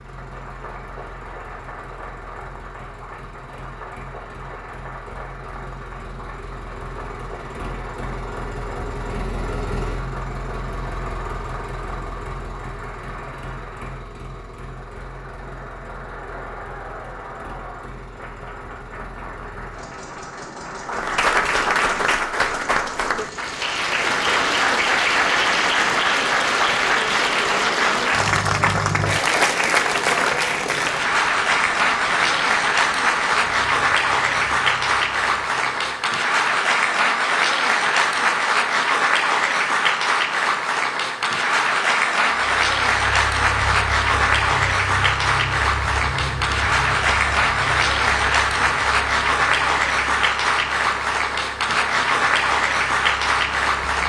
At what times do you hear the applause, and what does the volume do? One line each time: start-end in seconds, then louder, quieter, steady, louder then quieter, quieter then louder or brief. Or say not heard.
0.0-54.0 louder.